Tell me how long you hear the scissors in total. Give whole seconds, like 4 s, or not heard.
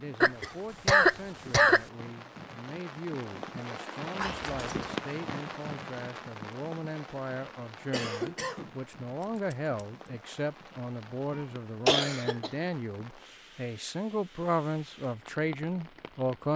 2 s.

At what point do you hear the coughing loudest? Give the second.
1 s.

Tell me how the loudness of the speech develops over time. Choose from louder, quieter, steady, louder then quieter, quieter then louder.
louder.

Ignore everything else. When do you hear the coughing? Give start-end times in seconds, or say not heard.
0.2-1.8, 7.9-8.8, 11.3-12.5.